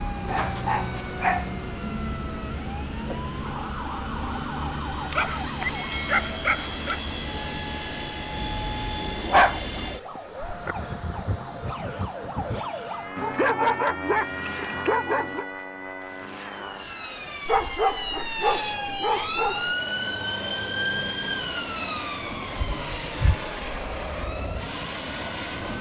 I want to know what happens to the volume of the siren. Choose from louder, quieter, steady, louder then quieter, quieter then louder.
louder.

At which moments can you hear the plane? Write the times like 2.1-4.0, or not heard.
0.0-25.7.